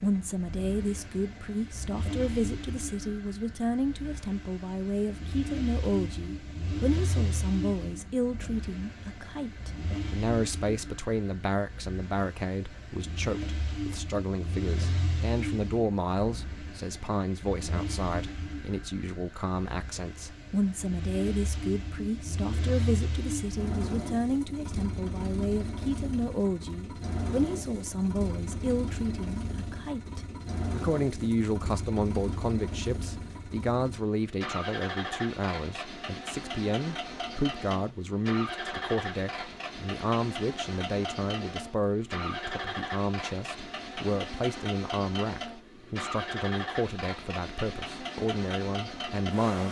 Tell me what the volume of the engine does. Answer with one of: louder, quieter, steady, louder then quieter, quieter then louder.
steady.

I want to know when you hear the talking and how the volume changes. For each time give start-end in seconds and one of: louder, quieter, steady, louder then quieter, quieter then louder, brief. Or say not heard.
0.0-49.6 steady.